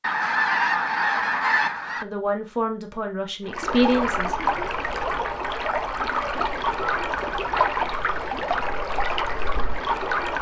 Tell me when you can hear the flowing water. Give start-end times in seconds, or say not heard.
3.5-10.3.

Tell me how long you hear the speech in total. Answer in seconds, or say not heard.
2 s.